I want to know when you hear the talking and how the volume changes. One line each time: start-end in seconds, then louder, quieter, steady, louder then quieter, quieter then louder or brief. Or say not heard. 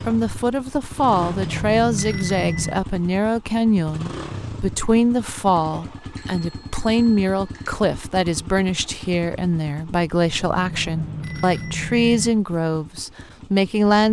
0.1-14.0 steady.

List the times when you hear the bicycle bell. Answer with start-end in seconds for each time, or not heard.
1.0-2.8, 6.0-7.8, 10.2-12.3.